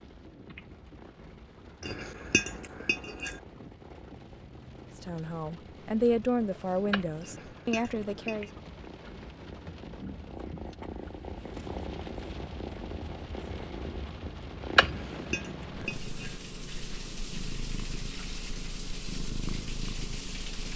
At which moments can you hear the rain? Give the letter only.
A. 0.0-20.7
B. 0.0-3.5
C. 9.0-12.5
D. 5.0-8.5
A.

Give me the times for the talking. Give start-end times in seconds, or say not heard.
5.0-8.5.